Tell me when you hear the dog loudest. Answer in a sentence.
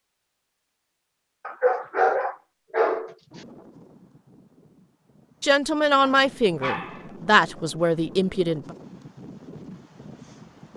The volume of the dog peaks at 2 seconds.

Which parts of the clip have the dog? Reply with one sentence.
You can hear the dog from 1.4 to 3.4 s and from 6.0 to 7.1 s.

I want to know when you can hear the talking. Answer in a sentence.
You can hear the talking from 5.4 to 8.8 s.